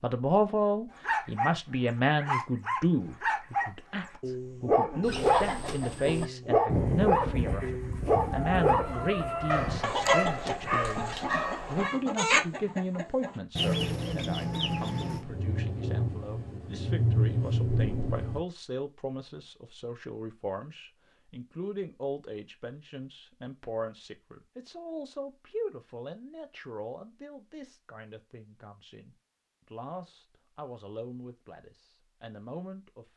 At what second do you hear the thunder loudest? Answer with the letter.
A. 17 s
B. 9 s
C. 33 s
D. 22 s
A.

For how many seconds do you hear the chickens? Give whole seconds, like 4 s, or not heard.
10 s.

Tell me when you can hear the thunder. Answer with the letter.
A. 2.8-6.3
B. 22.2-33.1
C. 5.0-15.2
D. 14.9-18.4
D.